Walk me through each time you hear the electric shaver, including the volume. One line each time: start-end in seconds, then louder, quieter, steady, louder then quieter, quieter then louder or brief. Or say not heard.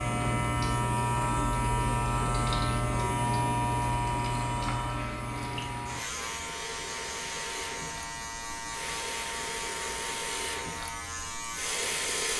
0.0-12.3 quieter.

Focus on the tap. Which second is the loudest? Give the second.
12 s.